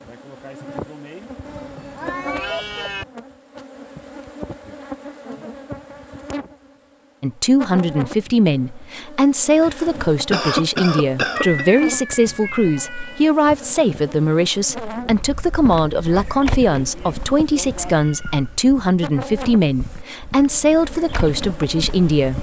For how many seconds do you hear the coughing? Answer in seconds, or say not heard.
2 s.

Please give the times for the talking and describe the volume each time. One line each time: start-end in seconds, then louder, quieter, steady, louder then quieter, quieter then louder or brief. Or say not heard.
7.2-22.3 steady.